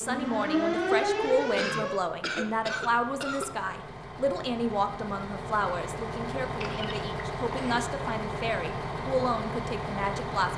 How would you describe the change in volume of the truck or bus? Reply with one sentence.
The volume of the truck or bus goes up.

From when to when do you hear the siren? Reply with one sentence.
You can hear the siren from 0.0 to 2.0 s.